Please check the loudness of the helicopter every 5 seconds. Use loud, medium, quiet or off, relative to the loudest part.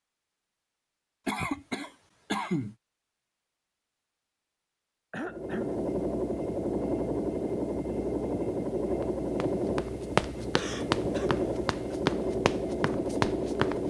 off, loud, loud.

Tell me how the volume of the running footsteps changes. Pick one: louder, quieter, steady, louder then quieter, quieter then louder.
quieter then louder.